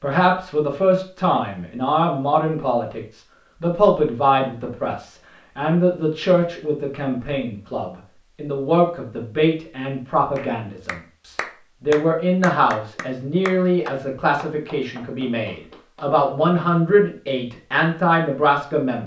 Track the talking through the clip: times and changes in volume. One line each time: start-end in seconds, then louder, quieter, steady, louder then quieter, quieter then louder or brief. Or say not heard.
0.0-19.0 steady.